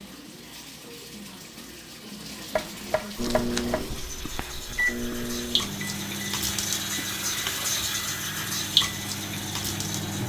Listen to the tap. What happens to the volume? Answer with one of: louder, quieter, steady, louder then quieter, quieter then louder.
louder.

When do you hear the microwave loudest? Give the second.
5 s.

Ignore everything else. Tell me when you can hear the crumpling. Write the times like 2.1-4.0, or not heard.
3.0-3.8.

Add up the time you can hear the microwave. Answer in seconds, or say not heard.
7 s.